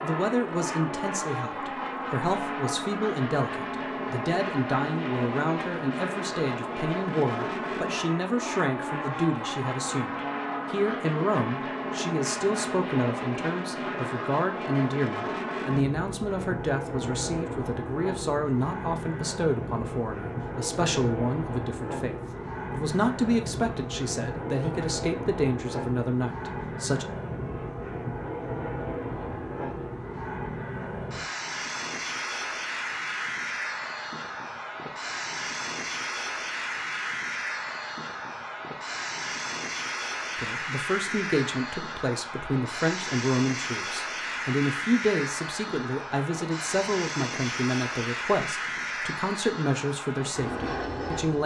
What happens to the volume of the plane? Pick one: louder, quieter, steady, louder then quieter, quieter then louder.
steady.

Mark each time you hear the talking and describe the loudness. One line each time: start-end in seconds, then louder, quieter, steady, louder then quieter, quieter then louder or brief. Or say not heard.
0.0-27.1 steady
40.4-51.4 steady.